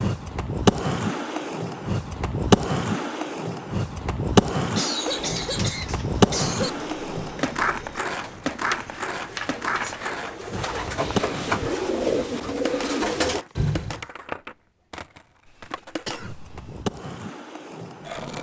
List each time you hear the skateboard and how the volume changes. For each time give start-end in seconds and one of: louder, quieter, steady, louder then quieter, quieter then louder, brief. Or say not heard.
0.0-18.3 quieter.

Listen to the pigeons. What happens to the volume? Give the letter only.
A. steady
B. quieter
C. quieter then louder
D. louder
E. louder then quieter
D.